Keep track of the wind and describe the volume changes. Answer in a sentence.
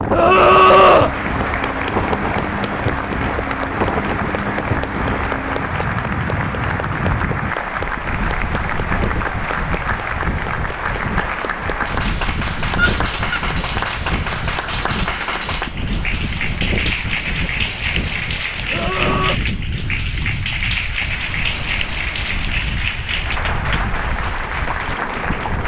The volume of the wind goes down.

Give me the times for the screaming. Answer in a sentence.
The screaming can be heard from 0.1 to 1.1 s, from 12.8 to 13.4 s and from 18.7 to 19.4 s.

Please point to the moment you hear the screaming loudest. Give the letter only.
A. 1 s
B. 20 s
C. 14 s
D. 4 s
A.